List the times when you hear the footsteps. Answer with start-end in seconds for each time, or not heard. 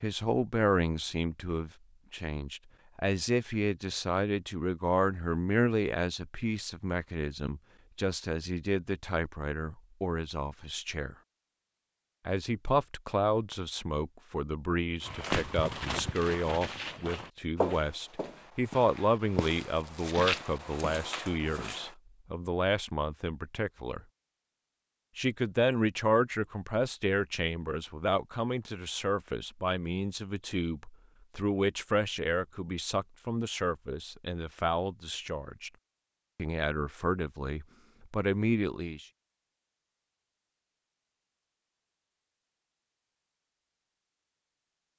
15.0-21.9.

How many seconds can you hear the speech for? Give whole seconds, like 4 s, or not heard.
36 s.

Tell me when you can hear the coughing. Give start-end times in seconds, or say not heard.
not heard.